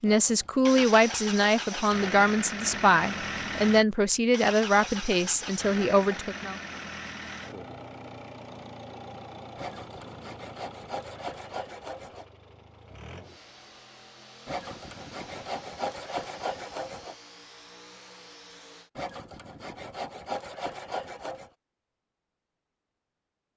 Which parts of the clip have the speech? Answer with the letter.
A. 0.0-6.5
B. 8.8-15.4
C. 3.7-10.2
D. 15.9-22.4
A.